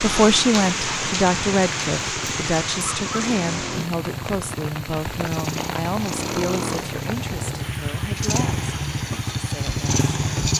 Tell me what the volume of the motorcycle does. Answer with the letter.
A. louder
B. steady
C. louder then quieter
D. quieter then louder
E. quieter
A.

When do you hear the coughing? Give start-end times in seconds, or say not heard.
not heard.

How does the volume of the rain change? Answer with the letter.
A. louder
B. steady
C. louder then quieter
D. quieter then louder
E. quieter
E.